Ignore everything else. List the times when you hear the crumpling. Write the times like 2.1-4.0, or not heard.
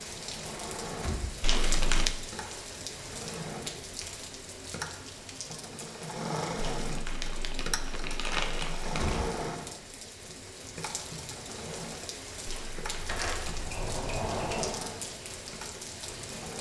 1.4-2.1, 6.5-9.2, 12.4-13.7.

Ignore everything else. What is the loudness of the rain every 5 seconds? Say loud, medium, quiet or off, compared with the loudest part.
loud, medium, loud, loud.